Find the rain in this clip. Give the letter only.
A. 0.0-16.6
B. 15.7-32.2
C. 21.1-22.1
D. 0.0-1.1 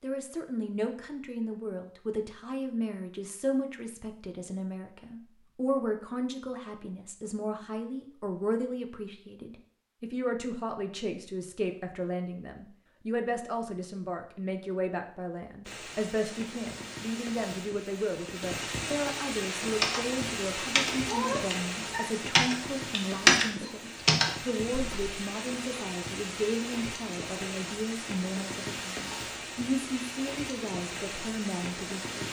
B.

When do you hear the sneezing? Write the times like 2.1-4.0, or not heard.
21.1-22.1.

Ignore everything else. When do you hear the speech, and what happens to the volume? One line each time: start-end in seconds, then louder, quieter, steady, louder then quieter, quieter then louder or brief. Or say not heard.
0.0-32.2 steady.